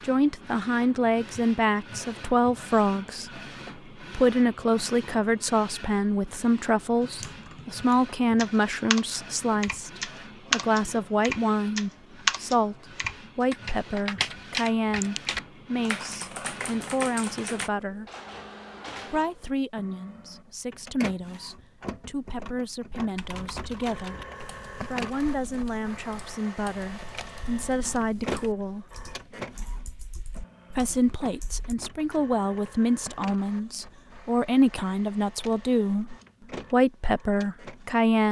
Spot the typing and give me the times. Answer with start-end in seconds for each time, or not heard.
7.0-17.7, 23.1-31.8.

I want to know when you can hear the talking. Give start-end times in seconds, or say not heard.
0.0-3.3, 4.1-12.8, 13.3-18.1, 19.1-24.2, 24.9-28.9, 30.7-38.2.